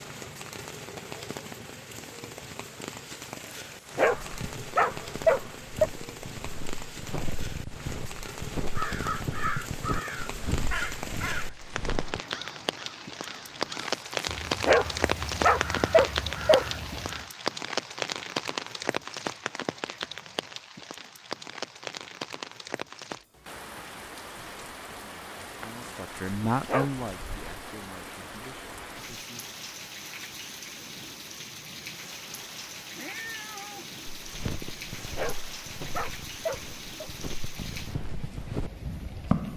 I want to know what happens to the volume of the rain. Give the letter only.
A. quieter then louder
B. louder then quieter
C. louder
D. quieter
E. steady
B.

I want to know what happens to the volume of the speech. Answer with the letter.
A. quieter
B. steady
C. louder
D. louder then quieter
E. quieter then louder
D.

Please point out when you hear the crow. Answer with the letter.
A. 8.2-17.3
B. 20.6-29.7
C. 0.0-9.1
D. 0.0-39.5
A.